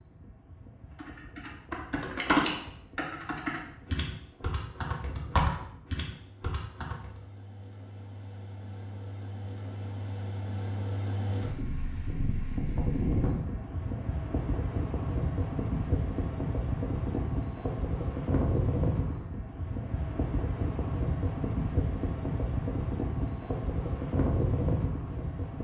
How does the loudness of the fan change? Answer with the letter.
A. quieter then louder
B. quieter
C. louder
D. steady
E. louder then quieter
C.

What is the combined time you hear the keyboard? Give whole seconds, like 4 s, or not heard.
6 s.